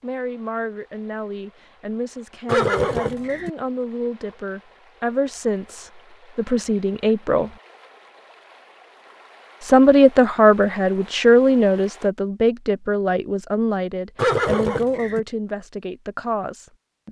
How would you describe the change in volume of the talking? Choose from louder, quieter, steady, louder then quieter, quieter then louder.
louder then quieter.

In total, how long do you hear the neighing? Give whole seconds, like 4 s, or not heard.
2 s.